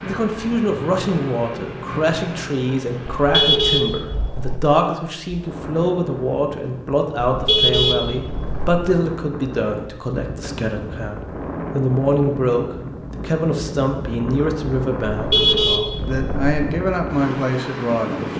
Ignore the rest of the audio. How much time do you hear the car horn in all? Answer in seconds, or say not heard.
4 s.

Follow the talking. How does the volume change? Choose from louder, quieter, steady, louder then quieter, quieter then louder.
steady.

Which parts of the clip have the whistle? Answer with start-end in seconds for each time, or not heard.
not heard.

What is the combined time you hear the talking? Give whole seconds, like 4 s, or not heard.
18 s.